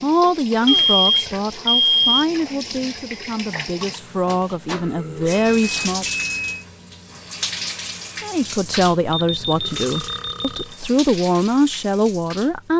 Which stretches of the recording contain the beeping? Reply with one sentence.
The beeping can be heard from 0.7 to 2.2 s, from 5.3 to 6.7 s and from 9.1 to 10.8 s.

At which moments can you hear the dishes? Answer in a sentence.
The dishes can't be heard in this clip.